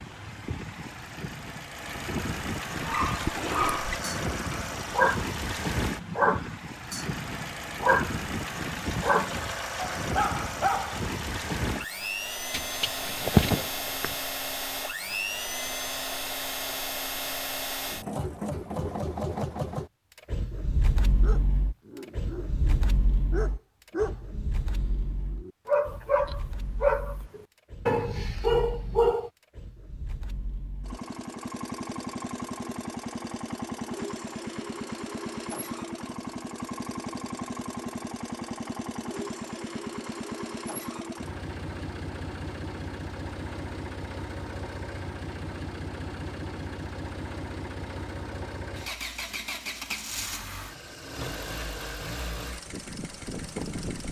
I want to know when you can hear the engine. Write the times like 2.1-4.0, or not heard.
0.0-54.0.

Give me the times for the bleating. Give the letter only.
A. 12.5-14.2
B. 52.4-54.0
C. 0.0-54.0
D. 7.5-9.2
A.